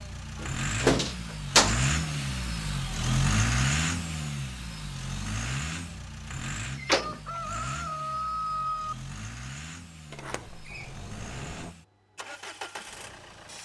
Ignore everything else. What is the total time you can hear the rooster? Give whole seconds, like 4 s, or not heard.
2 s.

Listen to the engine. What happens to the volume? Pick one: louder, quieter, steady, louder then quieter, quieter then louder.
quieter.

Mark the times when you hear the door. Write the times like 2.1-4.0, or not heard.
0.4-1.8, 6.8-7.4, 10.1-11.7.